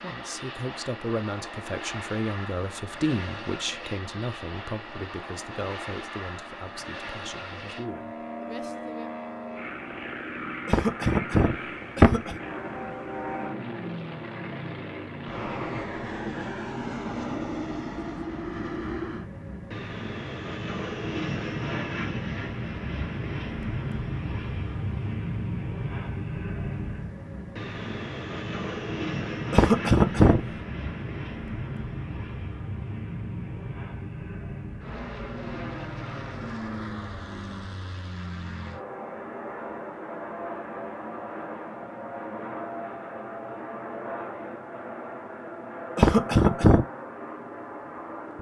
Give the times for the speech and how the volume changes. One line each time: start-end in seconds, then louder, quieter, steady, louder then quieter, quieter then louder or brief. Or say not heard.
0.0-9.1 quieter.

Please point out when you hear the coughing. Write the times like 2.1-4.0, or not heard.
10.7-12.3, 29.5-30.4, 46.0-46.9.